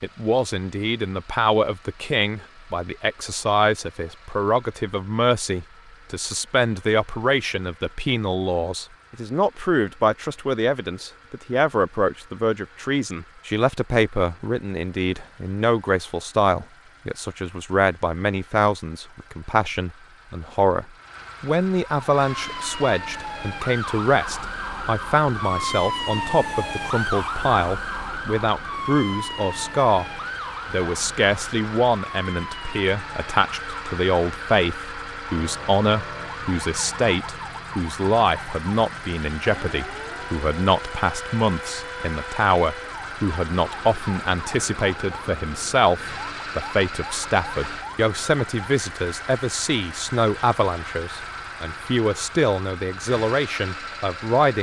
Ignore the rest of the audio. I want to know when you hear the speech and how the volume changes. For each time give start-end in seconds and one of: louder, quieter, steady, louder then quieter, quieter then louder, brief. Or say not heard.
0.0-54.5 steady.